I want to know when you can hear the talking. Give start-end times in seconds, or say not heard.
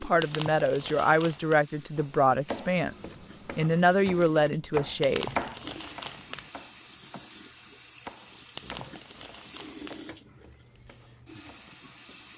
0.0-5.3.